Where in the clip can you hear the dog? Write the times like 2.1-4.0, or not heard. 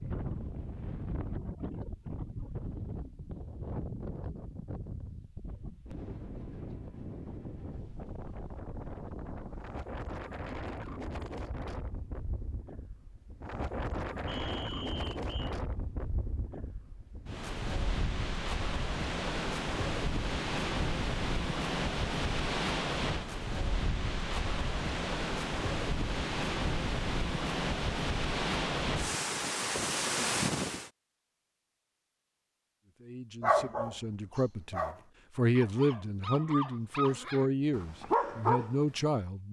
33.4-38.8.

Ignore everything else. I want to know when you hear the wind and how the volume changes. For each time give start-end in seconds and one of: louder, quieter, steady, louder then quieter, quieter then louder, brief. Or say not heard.
0.0-30.9 louder.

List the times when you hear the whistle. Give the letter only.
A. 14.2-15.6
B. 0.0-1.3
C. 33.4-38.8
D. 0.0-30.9
A.